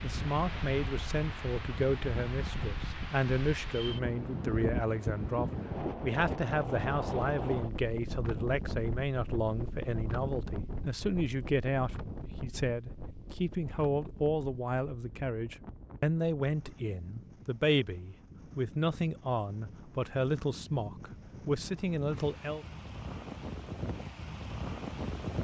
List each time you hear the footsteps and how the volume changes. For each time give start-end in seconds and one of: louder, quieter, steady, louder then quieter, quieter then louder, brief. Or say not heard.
not heard.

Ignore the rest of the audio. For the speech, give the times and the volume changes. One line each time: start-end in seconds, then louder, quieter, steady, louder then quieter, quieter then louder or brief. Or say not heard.
0.0-22.6 steady.